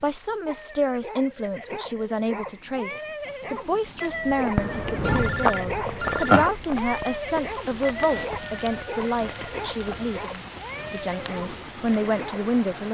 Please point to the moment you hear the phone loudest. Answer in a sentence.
The loudest moment of the phone is at 6 seconds.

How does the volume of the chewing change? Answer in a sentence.
The loudness of the chewing goes down.